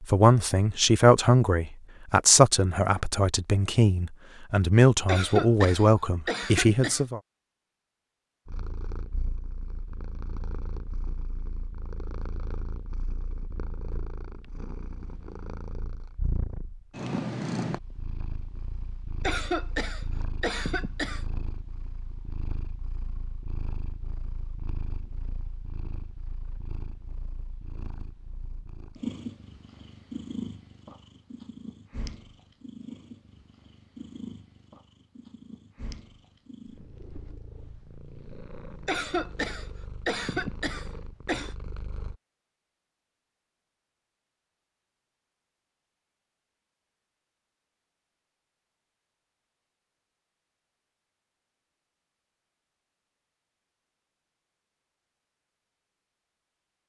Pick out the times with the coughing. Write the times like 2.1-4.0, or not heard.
5.0-7.0, 19.2-21.2, 38.9-41.5.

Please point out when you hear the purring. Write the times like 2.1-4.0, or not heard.
8.4-42.1.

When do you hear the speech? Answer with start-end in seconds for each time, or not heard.
0.0-7.2.